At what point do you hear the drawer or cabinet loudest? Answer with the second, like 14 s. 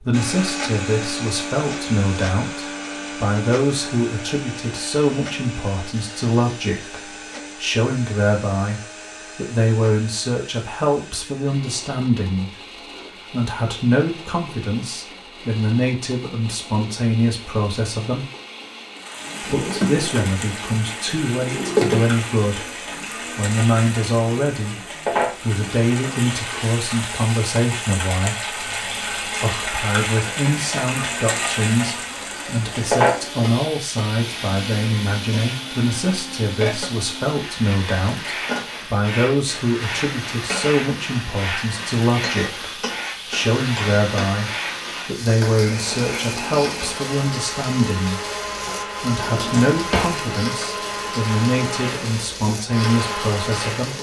22 s.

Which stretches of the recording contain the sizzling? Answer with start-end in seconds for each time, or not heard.
18.9-53.9.